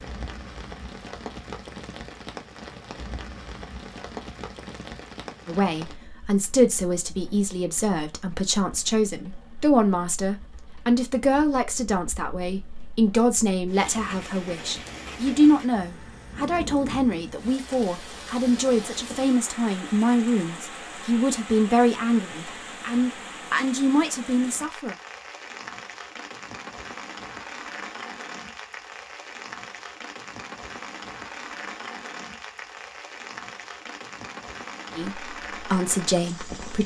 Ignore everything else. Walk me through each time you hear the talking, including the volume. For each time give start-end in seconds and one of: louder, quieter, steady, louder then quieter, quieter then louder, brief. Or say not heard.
5.5-24.9 steady
35.0-36.8 brief.